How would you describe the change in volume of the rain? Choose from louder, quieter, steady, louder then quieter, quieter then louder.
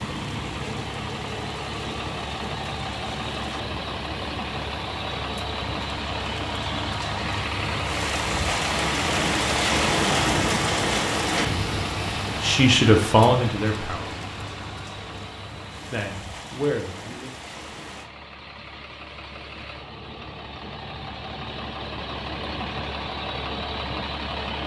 louder then quieter.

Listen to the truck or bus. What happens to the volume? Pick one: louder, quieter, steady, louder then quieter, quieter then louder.
quieter then louder.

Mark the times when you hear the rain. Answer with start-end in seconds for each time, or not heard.
0.0-18.1.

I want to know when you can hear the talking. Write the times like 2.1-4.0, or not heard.
12.4-14.2, 15.9-17.3.